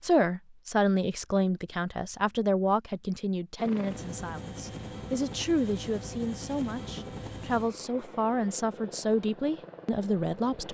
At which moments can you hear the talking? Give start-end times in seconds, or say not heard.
0.0-10.6.